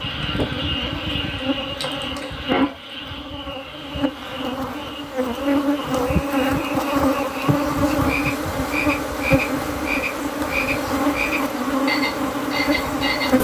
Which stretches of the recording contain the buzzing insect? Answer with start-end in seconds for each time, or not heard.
0.0-13.3.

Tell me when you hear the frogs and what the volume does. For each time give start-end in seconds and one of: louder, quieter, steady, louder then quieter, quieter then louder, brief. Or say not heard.
0.0-13.3 quieter then louder.